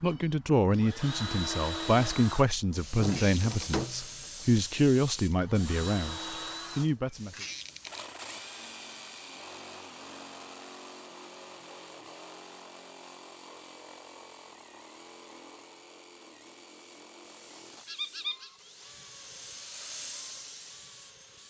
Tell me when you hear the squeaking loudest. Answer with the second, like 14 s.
18 s.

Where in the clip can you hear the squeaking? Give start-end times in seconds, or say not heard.
3.0-3.8, 7.3-8.1, 17.9-18.5.